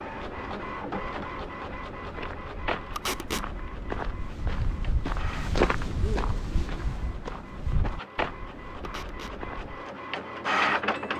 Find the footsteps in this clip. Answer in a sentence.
You can hear the footsteps from 0.2 to 9.8 s.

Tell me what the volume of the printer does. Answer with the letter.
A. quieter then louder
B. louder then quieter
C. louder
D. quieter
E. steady
A.